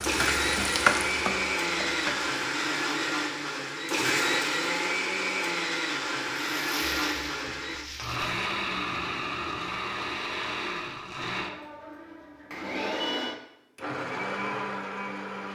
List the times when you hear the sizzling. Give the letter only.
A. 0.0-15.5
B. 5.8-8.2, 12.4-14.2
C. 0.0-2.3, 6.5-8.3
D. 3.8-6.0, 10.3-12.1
C.